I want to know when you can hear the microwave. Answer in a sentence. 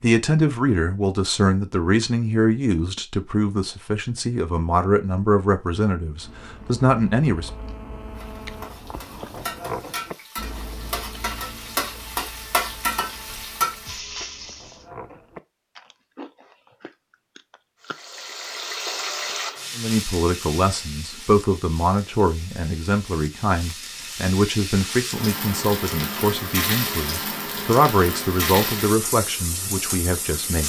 You can't hear the microwave here.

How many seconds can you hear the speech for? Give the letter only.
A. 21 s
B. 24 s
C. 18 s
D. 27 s
C.